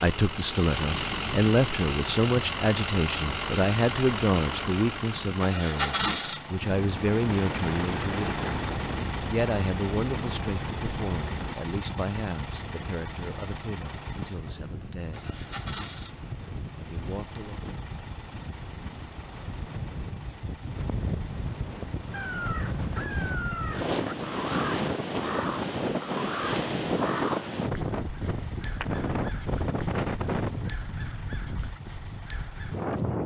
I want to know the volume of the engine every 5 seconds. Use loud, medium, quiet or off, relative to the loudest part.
loud, loud, medium, quiet, quiet, quiet, quiet.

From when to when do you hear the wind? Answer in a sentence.
You can hear the wind from 6.6 to 33.2 s.